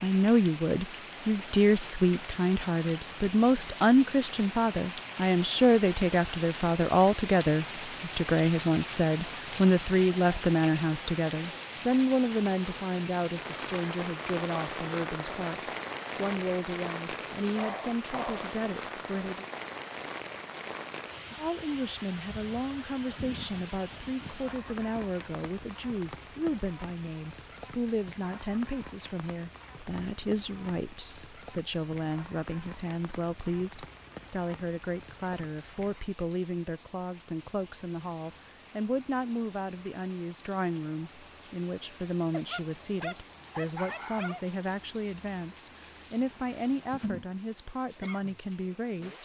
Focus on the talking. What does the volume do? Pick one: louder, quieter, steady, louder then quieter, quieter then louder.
quieter.